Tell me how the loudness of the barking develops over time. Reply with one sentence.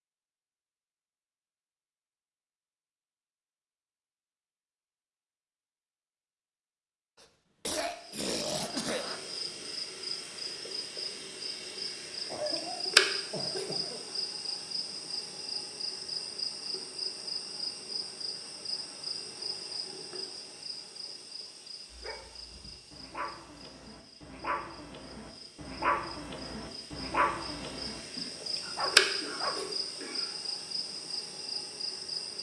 The loudness of the barking goes up, then down.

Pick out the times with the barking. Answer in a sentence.
You can hear the barking from 21.9 to 29.6 s.